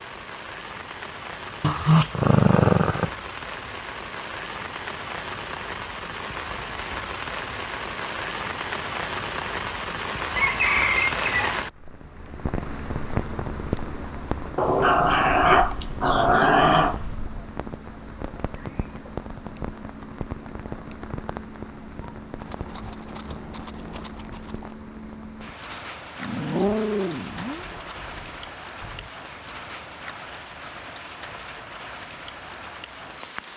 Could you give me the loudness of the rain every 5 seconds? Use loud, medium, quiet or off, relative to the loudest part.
medium, loud, loud, medium, medium, medium, medium.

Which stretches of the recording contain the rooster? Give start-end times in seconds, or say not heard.
10.3-11.6.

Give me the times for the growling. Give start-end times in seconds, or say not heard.
1.6-3.1, 14.6-17.0, 25.7-27.6.